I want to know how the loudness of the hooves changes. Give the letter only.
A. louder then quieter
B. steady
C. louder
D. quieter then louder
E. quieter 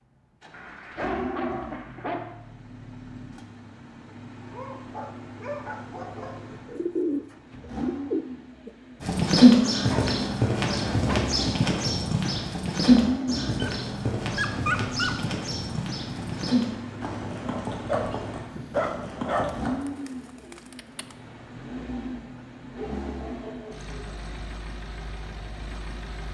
E.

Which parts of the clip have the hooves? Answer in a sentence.
The hooves can be heard from 9.0 to 19.8 s.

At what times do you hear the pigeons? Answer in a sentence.
You can hear the pigeons from 6.5 to 8.7 s and from 19.7 to 21.1 s.